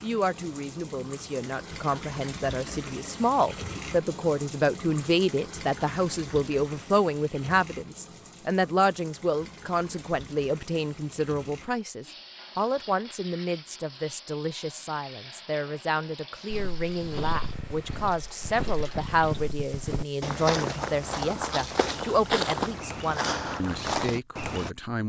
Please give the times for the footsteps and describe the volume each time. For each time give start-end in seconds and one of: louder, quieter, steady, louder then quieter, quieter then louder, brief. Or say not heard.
16.5-24.7 louder.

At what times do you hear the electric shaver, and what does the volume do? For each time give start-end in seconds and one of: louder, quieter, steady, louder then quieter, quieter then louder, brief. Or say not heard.
not heard.